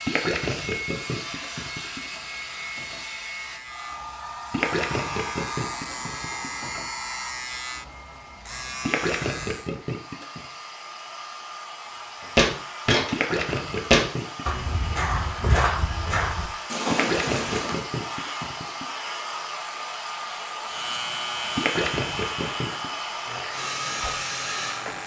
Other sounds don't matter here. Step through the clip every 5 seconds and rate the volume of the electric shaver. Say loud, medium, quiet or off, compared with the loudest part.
medium, loud, off, off, loud.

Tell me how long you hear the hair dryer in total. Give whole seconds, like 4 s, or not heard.
25 s.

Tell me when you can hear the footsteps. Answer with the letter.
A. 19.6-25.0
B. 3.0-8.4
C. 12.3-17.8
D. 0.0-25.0
C.